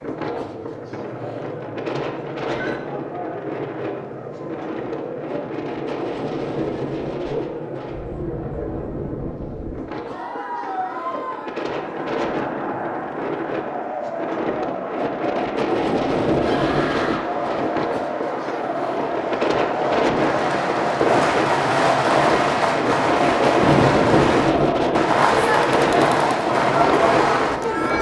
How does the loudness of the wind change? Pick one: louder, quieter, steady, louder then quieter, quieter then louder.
louder.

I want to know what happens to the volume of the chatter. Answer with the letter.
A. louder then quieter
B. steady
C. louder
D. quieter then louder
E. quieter
C.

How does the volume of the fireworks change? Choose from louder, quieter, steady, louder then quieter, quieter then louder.
louder.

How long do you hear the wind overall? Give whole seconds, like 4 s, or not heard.
28 s.